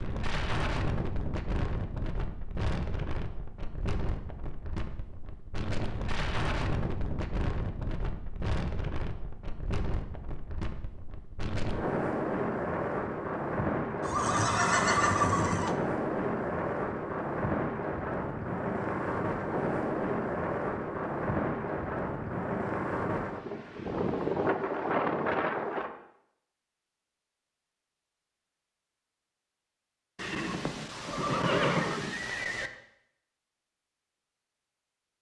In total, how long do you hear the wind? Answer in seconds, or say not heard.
26 s.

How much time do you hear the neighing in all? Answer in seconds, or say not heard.
4 s.